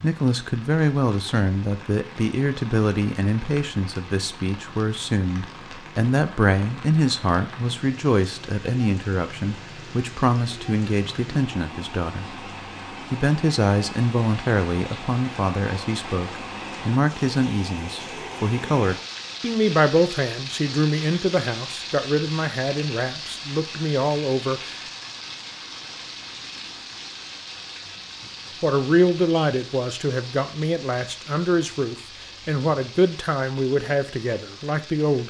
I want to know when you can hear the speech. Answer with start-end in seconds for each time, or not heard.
0.0-12.4, 13.1-24.8, 28.6-35.2.